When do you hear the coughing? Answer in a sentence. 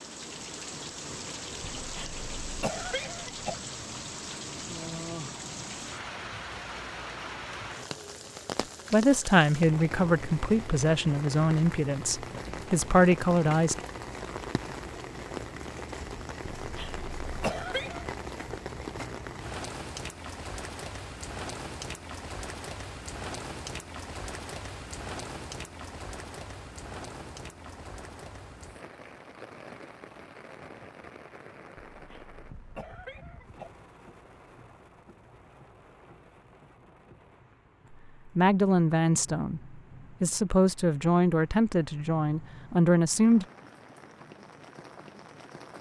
You can hear the coughing from 1.8 to 3.5 s, from 16.6 to 18.1 s and from 31.9 to 33.7 s.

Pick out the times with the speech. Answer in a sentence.
You can hear the speech from 8.6 to 13.8 s and from 38.4 to 43.5 s.